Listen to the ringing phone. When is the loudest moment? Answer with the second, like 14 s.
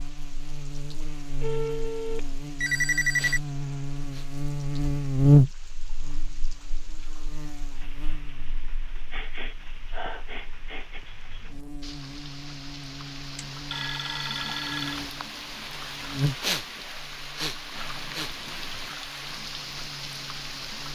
3 s.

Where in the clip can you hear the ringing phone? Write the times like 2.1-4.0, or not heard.
1.4-3.4, 13.3-15.0.